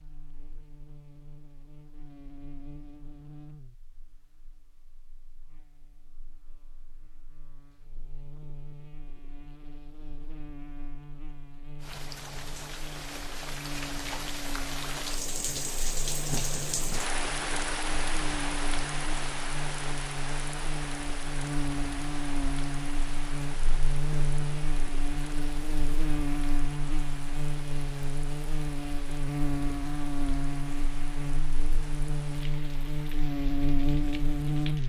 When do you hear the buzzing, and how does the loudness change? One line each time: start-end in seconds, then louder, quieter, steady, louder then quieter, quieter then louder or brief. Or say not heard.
0.0-34.8 louder.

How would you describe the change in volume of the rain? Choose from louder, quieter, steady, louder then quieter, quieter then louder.
quieter.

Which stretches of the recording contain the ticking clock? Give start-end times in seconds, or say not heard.
not heard.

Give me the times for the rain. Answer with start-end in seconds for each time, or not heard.
11.8-34.8.